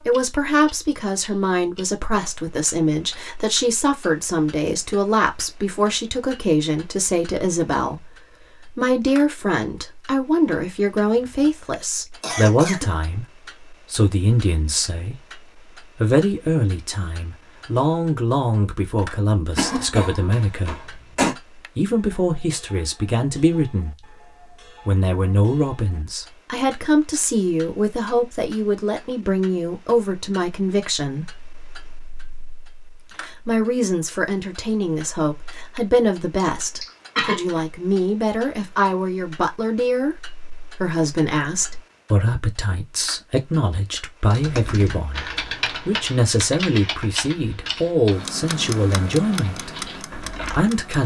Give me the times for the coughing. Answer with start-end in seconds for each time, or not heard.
11.2-12.9, 19.6-21.4, 36.4-37.6.